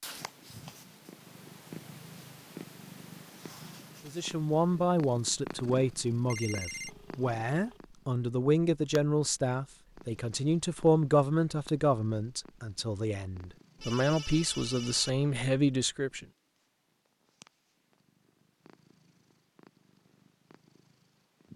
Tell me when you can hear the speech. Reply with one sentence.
You can hear the speech from 4.0 to 16.2 s.